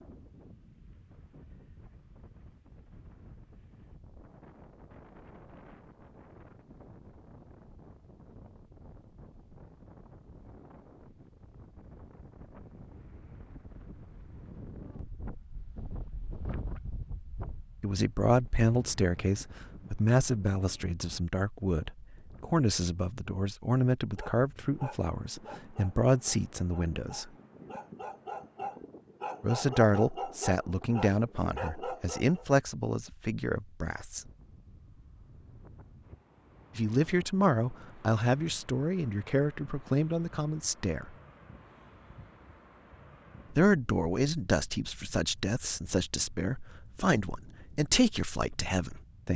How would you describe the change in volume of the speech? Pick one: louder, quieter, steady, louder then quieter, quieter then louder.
steady.